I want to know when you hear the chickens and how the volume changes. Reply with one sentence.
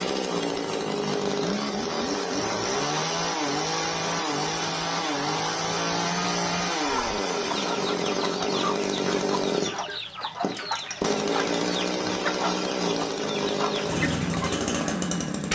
You can hear the chickens from 6.8 to 14.6 s, at a steady volume.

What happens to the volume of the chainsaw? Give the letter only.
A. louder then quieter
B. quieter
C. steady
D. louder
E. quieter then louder
C.